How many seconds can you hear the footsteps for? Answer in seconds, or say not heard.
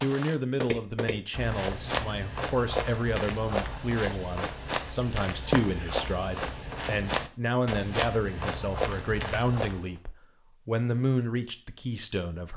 10 s.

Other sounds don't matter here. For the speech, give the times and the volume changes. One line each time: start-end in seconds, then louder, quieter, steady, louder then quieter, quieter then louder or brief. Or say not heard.
0.0-12.5 steady.